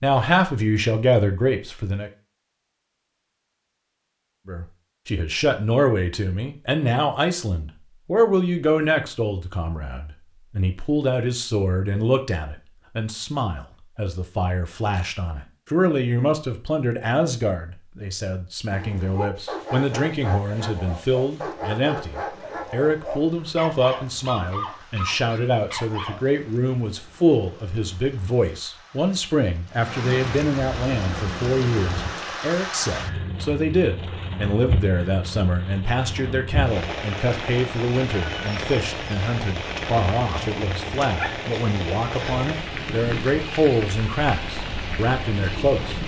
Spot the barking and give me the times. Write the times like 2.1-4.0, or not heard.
18.7-26.2.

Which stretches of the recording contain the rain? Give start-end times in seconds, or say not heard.
19.3-46.0.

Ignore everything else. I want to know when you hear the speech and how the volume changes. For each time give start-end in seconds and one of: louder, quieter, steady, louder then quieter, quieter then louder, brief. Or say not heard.
0.0-2.1 brief
4.5-46.0 steady.